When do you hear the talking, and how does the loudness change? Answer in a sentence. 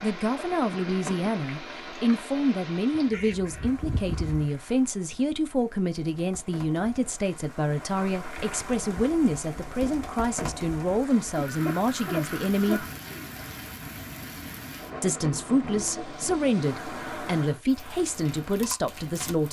The talking can be heard from 0.0 to 12.8 s, at a steady volume; and from 15.0 to 19.4 s, at a steady volume.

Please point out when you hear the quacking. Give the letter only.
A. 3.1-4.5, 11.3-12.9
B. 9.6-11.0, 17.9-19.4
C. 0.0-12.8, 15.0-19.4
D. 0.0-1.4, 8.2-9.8
A.